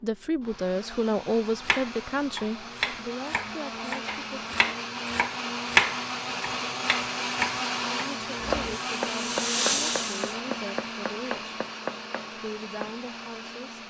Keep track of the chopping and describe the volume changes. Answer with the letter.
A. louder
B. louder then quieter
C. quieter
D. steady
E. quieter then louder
B.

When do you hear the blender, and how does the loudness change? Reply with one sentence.
The blender can be heard from 0.0 to 13.8 s, getting louder then quieter.